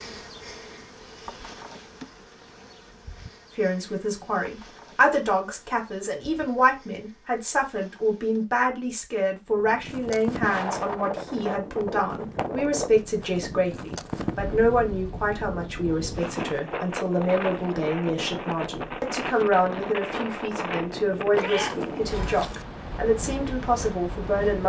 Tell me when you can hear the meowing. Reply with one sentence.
You can hear the meowing from 21.4 to 22.6 s.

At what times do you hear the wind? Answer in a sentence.
You can hear the wind from 9.5 to 24.6 s.